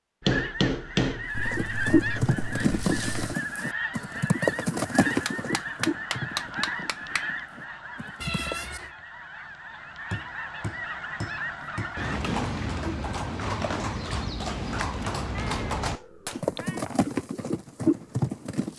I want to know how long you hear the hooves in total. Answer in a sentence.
The hooves can be heard for 14 seconds in total.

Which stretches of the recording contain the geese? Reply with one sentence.
The geese can be heard from 0.2 to 12.2 s.